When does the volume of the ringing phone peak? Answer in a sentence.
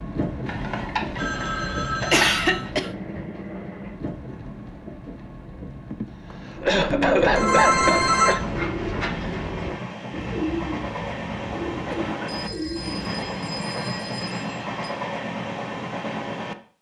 The loudest moment of the ringing phone is at 8 seconds.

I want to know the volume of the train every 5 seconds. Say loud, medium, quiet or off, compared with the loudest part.
loud, medium, loud, loud.